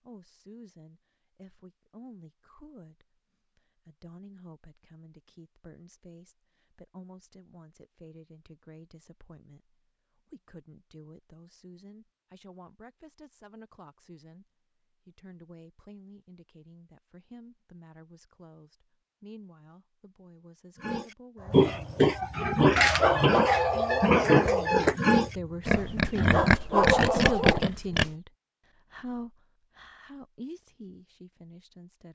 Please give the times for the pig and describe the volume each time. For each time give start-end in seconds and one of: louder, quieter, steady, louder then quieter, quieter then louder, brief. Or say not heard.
20.8-28.1 steady.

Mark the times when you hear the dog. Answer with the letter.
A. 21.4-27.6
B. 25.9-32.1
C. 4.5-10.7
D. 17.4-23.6
A.